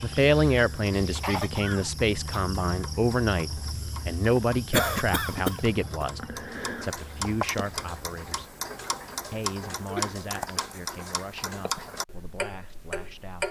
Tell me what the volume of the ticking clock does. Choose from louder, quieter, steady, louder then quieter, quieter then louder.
louder.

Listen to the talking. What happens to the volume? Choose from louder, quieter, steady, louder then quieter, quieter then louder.
quieter.